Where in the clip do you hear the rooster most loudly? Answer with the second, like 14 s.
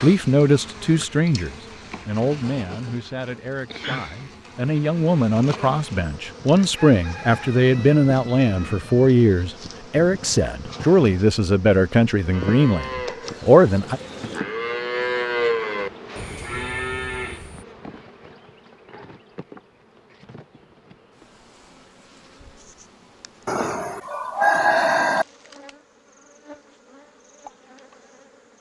25 s.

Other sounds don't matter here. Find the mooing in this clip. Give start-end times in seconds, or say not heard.
12.3-17.6.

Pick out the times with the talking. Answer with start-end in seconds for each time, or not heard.
0.0-14.0.